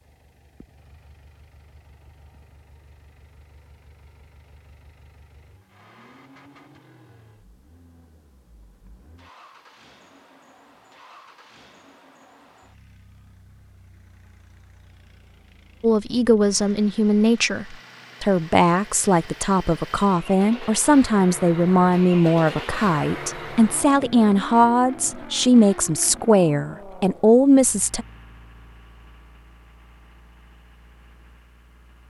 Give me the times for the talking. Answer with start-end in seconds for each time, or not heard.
15.8-28.1.